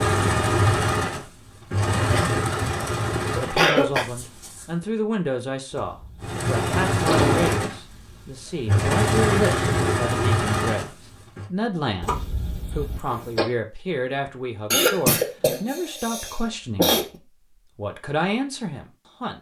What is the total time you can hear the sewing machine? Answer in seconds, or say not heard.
10 s.